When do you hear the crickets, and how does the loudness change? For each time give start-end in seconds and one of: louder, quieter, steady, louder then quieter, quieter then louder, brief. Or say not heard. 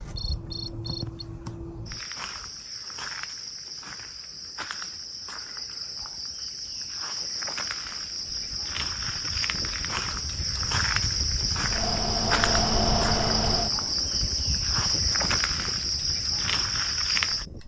0.0-17.6 louder.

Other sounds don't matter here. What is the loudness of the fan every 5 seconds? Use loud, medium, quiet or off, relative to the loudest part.
off, quiet, loud, quiet.